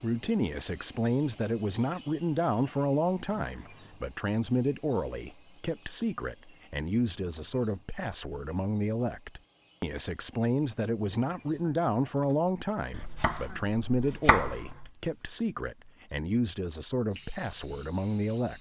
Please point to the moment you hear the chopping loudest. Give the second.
14 s.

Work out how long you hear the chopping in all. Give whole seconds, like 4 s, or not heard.
2 s.